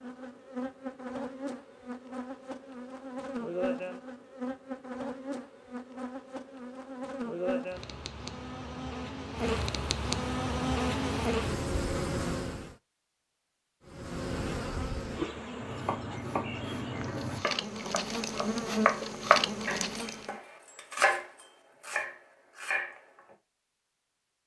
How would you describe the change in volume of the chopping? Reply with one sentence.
The loudness of the chopping goes up, then down.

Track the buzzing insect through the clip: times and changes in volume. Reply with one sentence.
The buzzing insect can be heard from 0.0 to 12.8 s, getting louder; and from 13.8 to 20.4 s, getting quieter then louder.